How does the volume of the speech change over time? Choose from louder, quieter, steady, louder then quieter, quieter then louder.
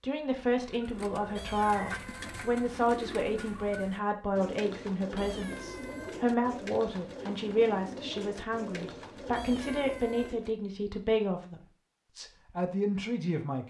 steady.